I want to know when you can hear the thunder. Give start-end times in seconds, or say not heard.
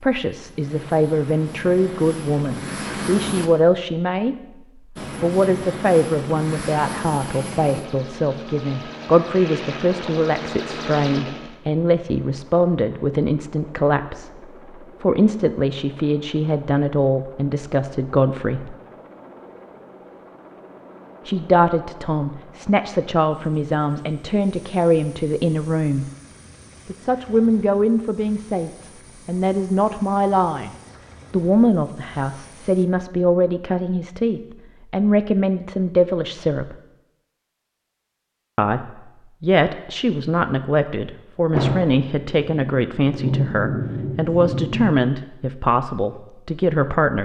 41.5-44.9.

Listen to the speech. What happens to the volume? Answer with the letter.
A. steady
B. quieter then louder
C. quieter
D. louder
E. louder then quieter
A.